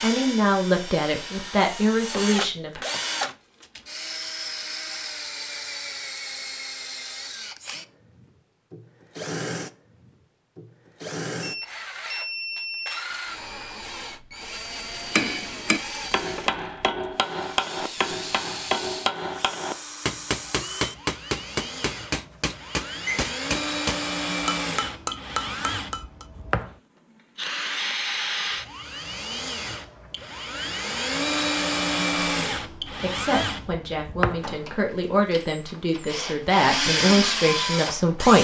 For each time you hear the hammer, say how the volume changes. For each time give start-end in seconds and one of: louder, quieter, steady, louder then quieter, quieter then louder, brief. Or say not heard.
14.7-26.2 steady.